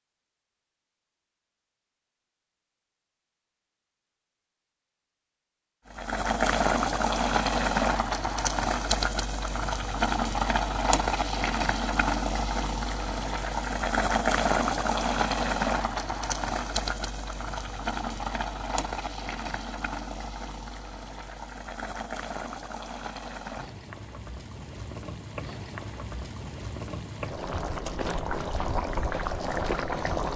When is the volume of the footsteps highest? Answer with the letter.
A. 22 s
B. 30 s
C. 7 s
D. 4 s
B.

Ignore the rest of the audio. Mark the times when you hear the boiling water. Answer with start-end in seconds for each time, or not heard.
5.9-30.3.